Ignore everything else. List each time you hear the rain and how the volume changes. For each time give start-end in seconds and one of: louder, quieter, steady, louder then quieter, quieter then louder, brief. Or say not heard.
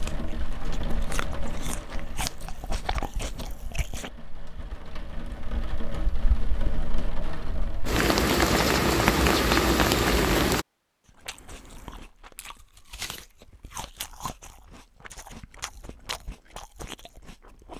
0.0-10.7 quieter then louder.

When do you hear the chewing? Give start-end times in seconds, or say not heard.
0.0-4.1, 11.1-17.7.